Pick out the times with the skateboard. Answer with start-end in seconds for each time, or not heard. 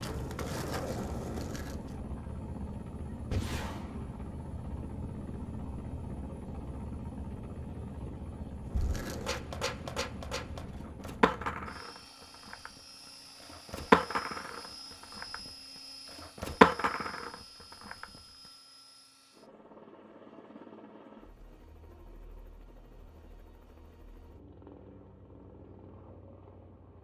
0.0-2.0, 8.7-18.1.